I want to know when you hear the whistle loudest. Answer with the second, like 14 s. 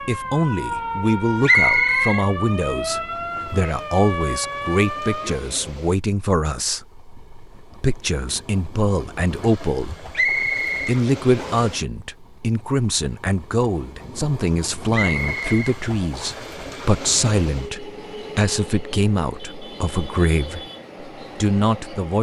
2 s.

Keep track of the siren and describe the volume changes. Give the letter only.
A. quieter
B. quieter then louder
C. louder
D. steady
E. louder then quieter
D.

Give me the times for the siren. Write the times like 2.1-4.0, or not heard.
0.0-5.5.